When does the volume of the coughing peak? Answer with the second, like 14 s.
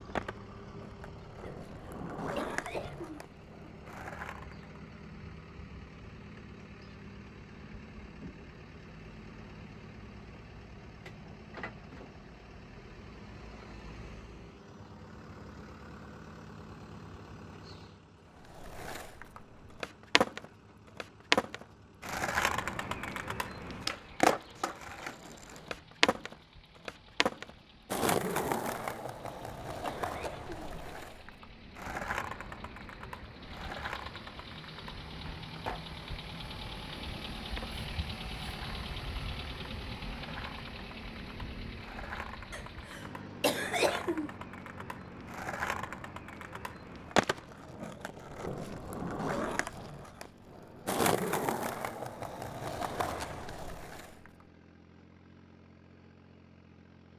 44 s.